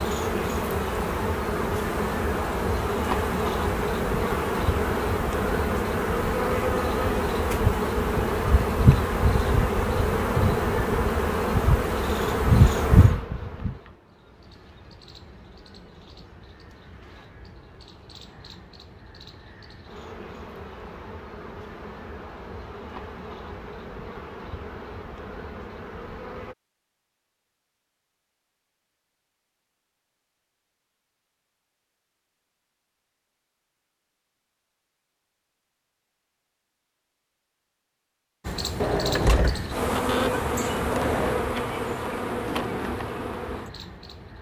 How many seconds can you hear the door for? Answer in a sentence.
You can hear the door for 3 seconds altogether.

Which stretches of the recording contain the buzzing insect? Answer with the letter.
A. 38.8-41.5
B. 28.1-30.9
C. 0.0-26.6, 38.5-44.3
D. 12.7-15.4
C.